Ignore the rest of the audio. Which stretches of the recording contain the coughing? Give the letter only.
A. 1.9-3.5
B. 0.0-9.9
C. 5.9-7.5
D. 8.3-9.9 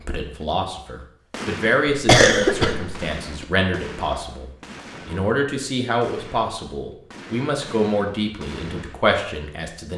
A.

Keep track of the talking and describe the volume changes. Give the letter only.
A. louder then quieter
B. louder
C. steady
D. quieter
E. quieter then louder
C.